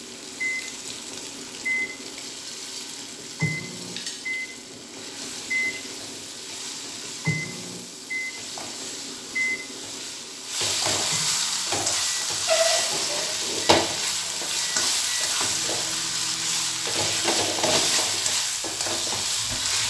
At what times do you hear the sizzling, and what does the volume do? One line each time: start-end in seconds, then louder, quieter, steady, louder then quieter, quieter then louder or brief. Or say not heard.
0.0-19.8 louder.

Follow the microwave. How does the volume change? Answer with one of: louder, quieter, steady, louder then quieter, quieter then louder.
quieter.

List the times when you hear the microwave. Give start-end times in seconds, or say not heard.
0.0-19.8.